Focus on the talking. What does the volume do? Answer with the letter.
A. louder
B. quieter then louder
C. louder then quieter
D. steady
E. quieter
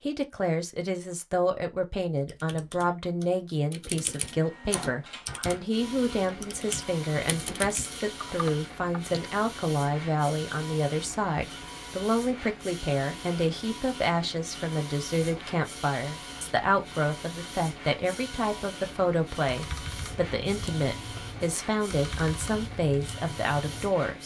D.